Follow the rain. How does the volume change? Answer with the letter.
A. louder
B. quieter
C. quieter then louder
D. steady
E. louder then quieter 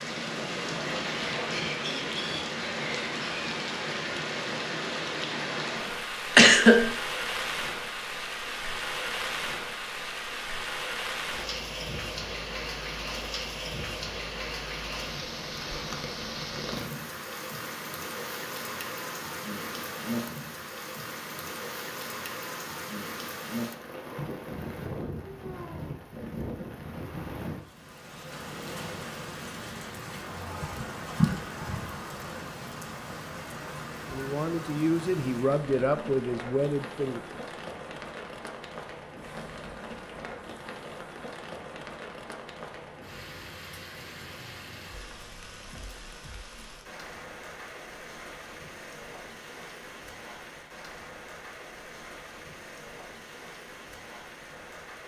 B.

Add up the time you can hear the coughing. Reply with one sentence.
You can hear the coughing for 2 seconds altogether.